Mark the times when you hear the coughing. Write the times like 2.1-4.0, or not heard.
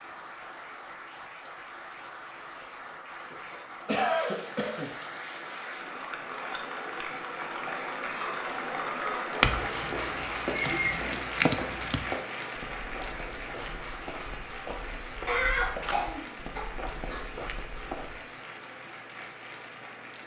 3.1-4.9, 10.5-11.2, 15.2-17.2.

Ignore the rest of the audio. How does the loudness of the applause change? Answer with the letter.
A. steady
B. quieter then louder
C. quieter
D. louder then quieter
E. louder
D.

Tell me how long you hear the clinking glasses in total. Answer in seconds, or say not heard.
3 s.